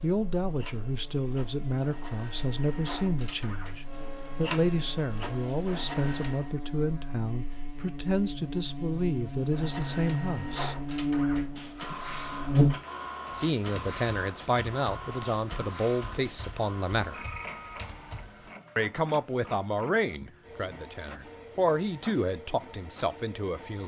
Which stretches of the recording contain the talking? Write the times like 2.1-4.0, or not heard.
0.0-10.8, 13.3-17.2, 18.8-23.8.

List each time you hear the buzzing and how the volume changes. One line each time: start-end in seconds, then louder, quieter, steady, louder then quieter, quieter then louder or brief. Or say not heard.
0.0-12.8 louder.